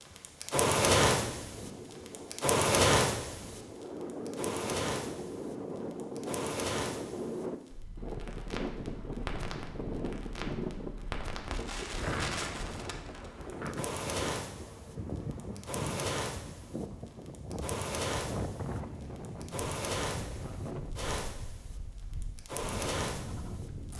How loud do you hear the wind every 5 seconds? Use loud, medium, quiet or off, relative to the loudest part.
loud, loud, loud, loud, medium.